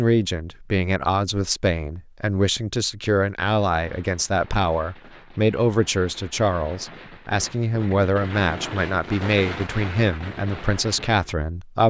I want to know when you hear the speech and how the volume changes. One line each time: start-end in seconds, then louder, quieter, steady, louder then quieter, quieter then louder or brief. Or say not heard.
0.0-11.8 steady.